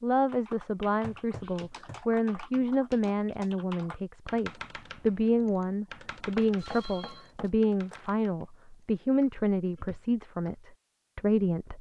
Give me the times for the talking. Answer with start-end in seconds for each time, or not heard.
0.0-11.7.